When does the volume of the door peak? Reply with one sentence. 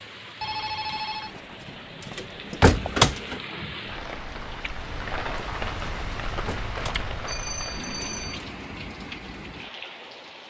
The loudest moment of the door is at 3 seconds.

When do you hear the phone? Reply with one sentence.
You can hear the phone from 0.4 to 2.8 s and from 7.2 to 8.4 s.